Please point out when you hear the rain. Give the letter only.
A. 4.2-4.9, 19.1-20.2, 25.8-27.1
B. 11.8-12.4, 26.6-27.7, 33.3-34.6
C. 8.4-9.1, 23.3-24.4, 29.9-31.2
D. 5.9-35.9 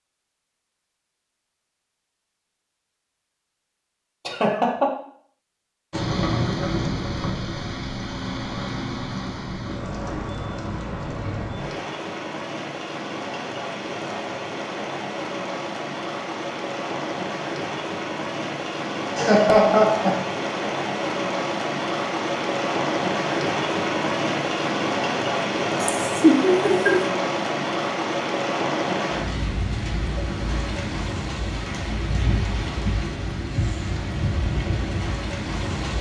D.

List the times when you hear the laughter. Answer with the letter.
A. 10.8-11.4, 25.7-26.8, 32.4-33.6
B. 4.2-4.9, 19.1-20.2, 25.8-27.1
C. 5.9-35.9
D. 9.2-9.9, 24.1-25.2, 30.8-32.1
B.